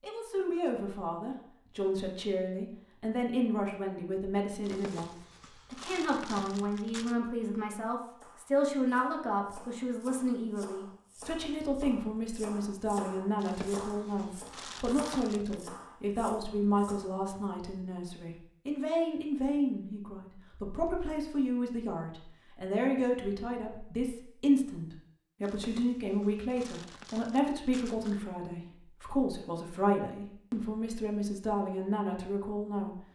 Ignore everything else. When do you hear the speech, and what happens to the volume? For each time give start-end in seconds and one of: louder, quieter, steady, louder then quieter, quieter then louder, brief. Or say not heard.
0.0-33.0 steady.